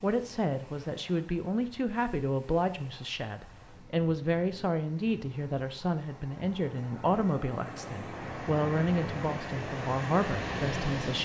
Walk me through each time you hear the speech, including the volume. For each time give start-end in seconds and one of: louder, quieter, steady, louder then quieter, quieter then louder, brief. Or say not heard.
0.0-11.2 steady.